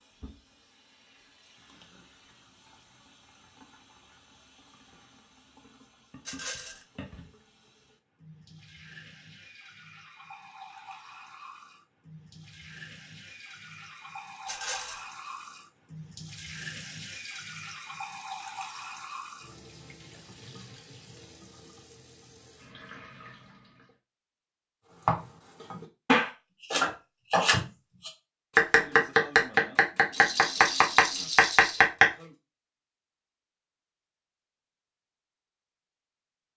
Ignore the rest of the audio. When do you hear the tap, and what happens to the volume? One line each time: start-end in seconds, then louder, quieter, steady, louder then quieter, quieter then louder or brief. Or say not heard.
0.0-23.9 louder then quieter.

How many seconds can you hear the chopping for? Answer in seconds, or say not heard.
7 s.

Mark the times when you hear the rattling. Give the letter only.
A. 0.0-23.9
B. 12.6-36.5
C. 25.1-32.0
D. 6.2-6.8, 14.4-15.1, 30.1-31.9
D.